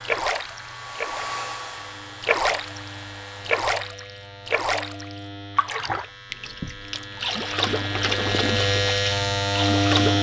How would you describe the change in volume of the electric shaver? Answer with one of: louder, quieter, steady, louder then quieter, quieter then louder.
louder.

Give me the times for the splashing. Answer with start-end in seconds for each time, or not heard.
0.0-1.4, 2.2-2.9, 3.5-10.1.